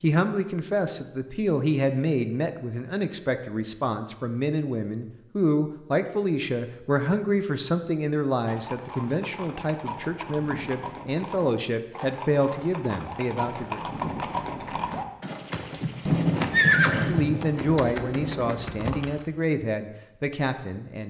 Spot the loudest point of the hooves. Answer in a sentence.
The loudest moment of the hooves is at 17 seconds.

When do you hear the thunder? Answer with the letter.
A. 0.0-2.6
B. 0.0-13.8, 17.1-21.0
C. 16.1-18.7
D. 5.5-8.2
C.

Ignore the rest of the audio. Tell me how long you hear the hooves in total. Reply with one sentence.
You can hear the hooves for 11 seconds altogether.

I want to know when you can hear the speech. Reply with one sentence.
The speech can be heard from 0.0 to 13.8 s and from 17.1 to 21.0 s.